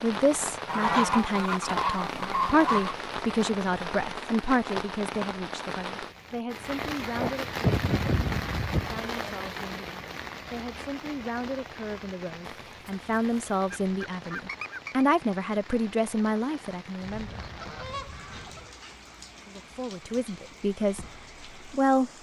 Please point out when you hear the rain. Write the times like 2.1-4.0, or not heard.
0.0-22.1.